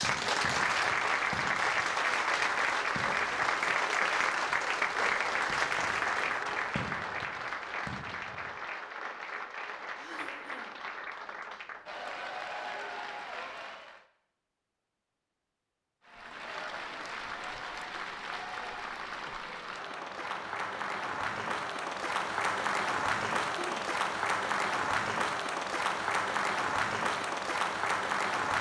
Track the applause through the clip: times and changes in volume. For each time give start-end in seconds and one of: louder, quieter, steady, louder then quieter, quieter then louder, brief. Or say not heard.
0.0-14.1 quieter
16.1-28.5 louder.